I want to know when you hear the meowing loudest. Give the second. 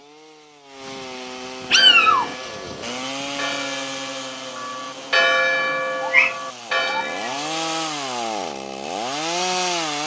2 s.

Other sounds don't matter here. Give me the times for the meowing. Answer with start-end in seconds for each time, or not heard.
1.7-2.4, 6.0-7.3.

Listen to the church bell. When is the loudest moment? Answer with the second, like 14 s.
5 s.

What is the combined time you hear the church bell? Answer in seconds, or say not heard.
6 s.